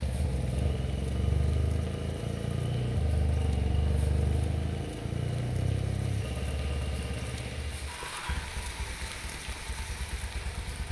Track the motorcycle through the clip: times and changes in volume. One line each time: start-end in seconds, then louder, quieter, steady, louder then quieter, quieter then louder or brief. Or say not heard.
0.0-10.8 quieter.